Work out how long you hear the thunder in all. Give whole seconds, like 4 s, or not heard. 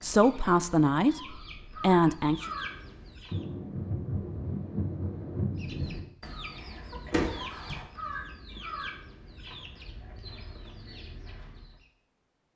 3 s.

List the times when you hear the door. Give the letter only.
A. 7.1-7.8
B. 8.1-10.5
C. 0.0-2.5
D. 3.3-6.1
A.